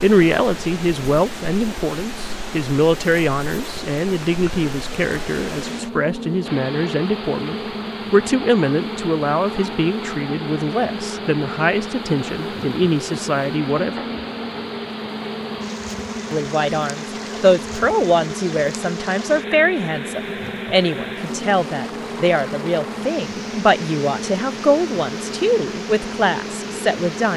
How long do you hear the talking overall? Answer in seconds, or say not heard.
25 s.